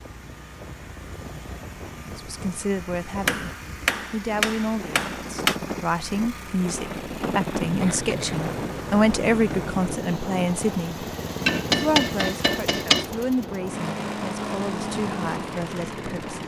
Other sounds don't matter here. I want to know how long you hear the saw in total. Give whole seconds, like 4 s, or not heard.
not heard.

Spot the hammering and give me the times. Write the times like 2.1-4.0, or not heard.
3.2-5.6, 11.4-13.1.